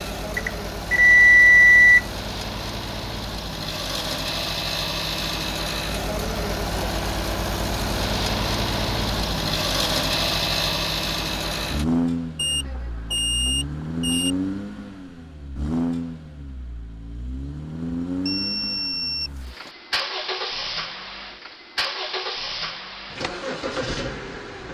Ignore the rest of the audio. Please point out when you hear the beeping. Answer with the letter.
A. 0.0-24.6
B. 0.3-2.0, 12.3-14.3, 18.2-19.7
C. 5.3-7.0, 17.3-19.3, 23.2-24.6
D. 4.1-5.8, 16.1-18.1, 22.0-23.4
B.